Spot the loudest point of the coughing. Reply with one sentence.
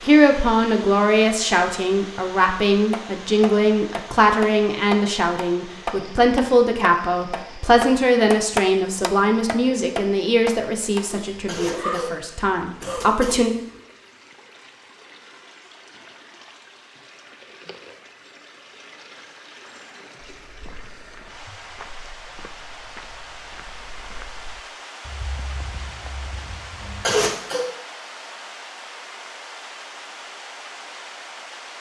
The loudest moment of the coughing is at 27 seconds.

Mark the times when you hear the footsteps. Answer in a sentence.
The footsteps can be heard from 20.2 to 27.1 s.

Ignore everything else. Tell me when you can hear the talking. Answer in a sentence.
You can hear the talking from 0.0 to 13.5 s.